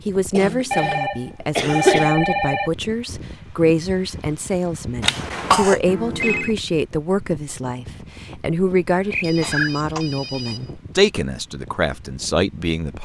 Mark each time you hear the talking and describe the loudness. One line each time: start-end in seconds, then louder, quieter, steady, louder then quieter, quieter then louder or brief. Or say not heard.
0.1-13.0 steady.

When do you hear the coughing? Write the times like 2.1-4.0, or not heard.
0.3-2.1, 5.0-5.8, 9.4-10.1.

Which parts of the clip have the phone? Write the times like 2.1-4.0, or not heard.
0.7-2.7, 5.8-6.5, 8.9-10.7.